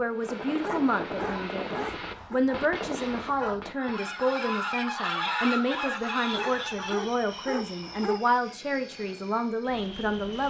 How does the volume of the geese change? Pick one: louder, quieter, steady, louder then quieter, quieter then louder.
louder.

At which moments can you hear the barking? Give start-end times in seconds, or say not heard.
0.6-2.4, 6.3-8.2.